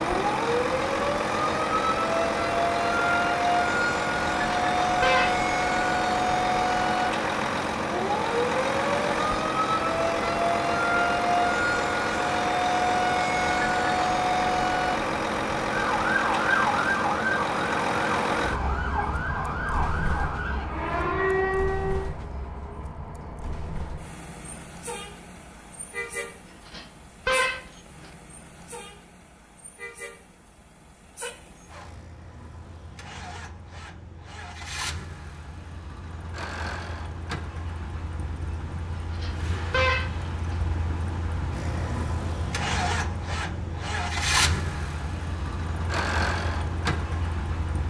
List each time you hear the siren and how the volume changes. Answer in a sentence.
The siren can be heard from 0.0 to 22.1 s, at a steady volume.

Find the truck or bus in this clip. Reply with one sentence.
You can hear the truck or bus from 0.0 to 47.8 s.